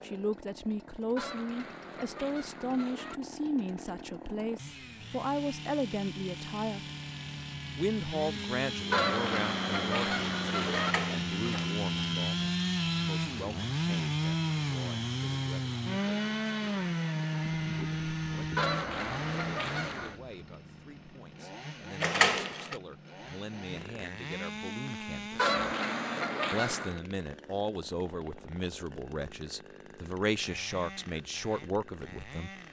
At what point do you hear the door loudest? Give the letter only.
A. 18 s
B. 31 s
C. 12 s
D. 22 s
D.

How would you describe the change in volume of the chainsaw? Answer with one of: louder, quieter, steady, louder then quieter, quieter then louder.
louder then quieter.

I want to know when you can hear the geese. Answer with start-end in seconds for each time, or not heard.
1.1-3.2, 8.9-10.9, 18.6-20.1, 25.4-27.0.